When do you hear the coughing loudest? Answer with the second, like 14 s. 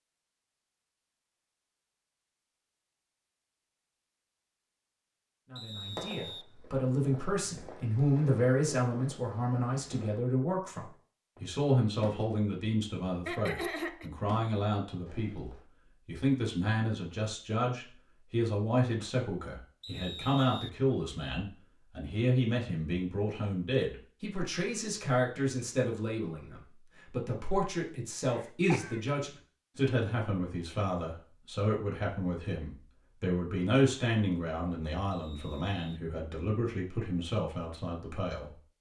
14 s.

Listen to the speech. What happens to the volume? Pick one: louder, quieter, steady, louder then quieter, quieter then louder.
steady.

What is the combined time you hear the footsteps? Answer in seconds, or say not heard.
not heard.